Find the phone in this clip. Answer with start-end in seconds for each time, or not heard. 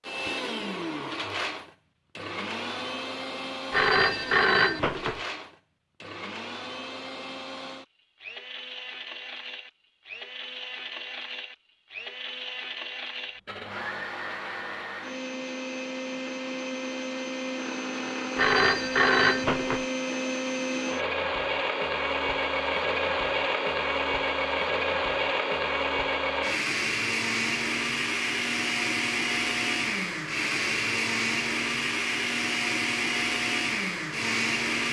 3.7-5.2, 18.4-19.9.